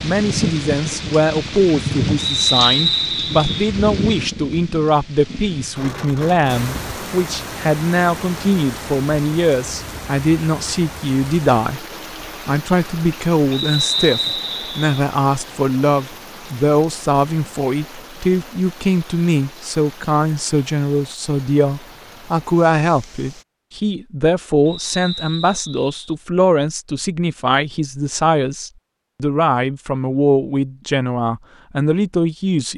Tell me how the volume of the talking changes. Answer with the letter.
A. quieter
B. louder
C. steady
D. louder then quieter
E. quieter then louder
C.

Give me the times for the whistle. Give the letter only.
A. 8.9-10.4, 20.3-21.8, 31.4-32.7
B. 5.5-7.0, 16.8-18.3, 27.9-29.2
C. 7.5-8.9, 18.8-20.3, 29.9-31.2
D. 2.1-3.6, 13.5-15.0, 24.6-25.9
D.